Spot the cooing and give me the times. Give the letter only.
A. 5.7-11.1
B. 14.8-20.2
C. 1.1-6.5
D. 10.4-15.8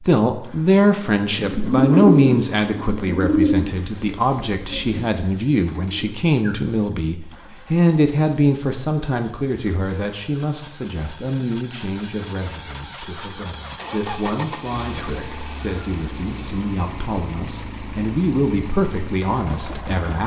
C.